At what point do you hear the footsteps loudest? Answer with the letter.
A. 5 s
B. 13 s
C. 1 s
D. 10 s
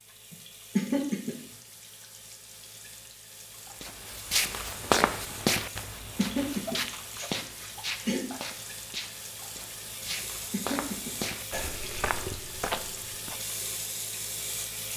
A.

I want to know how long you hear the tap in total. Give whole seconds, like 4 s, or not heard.
15 s.